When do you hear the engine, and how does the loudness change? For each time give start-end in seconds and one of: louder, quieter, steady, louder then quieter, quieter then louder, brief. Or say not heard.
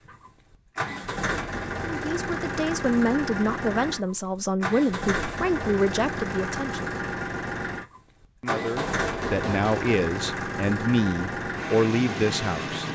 0.1-12.8 steady.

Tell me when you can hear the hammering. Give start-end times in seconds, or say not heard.
8.4-10.0.